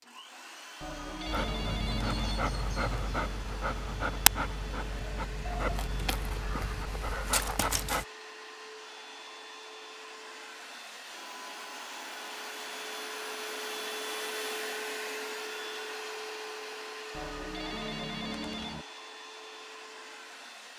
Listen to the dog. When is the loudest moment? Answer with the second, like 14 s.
4 s.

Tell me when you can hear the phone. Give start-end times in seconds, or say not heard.
0.8-2.5, 17.1-18.9.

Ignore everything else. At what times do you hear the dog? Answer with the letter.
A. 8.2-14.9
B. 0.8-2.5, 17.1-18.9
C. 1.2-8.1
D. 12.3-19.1
C.